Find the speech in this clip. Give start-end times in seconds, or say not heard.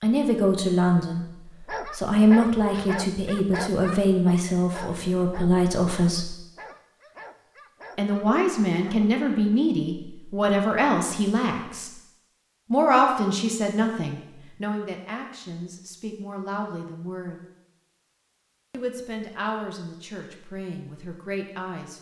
0.0-1.2, 1.9-6.3, 8.0-11.9, 12.7-17.4, 18.7-21.9.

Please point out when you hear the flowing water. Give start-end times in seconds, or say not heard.
not heard.